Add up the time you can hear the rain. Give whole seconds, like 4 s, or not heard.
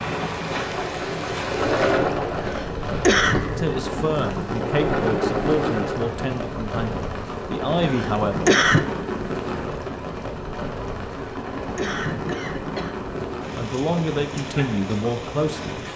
16 s.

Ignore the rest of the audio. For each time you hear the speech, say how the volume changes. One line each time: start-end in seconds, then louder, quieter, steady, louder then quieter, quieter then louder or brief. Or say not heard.
3.5-8.6 quieter then louder
13.6-15.8 brief.